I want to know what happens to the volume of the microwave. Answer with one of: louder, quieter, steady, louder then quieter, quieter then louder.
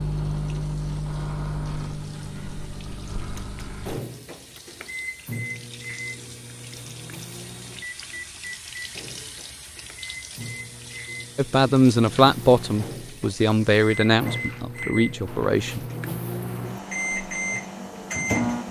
quieter then louder.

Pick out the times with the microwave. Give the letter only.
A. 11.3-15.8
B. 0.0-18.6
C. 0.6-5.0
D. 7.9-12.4
B.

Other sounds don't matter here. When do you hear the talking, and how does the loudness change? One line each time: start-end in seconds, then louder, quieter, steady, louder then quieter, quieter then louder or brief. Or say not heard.
11.3-15.8 quieter.